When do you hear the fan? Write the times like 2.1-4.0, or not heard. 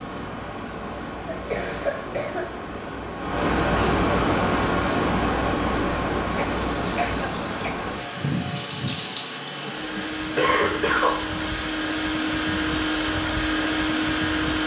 0.0-14.6.